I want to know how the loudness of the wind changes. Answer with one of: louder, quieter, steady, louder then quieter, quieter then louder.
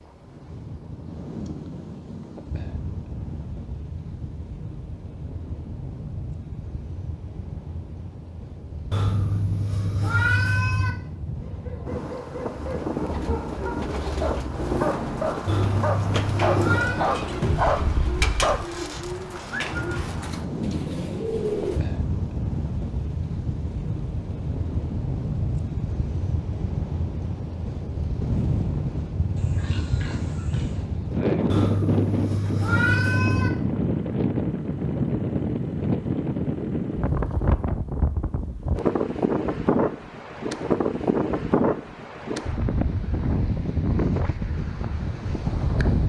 louder.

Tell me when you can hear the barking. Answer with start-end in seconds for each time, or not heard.
11.4-18.7.